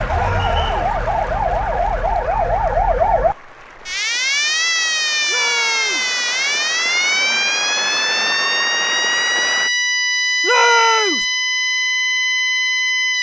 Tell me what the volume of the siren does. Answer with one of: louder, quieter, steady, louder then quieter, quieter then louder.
steady.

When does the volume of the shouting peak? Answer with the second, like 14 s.
11 s.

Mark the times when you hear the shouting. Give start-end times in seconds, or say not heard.
0.1-0.8, 5.2-6.1, 10.4-11.2.